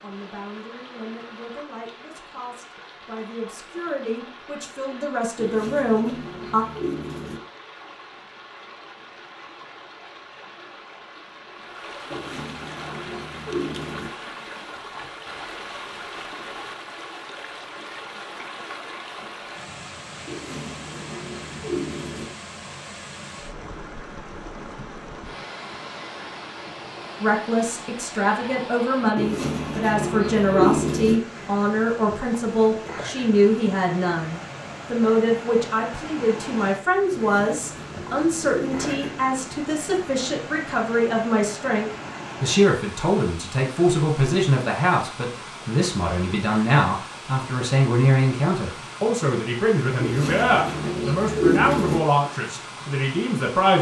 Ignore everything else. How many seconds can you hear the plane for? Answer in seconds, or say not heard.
not heard.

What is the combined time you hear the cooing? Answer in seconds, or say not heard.
12 s.